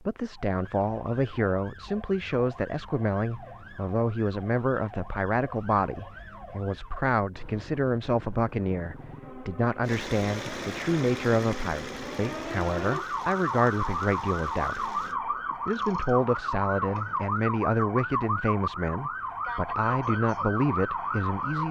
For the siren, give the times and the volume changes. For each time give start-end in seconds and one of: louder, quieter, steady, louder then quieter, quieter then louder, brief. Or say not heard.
0.1-21.6 louder.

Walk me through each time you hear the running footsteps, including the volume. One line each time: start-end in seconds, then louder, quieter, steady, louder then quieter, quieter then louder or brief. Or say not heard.
not heard.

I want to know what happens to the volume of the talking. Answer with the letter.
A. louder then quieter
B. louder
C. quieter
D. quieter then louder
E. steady
E.